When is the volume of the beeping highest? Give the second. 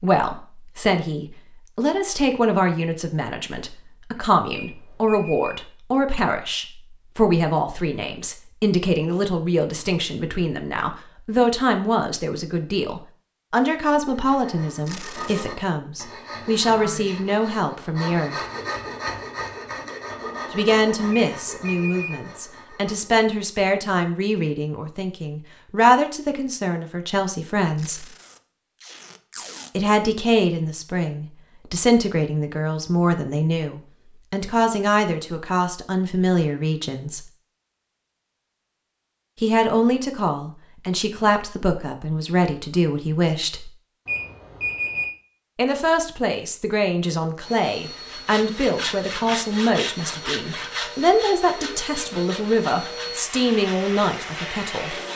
45 s.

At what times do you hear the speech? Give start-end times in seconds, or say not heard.
0.0-18.4, 20.5-28.1, 29.8-37.2, 39.4-43.7, 45.5-55.0.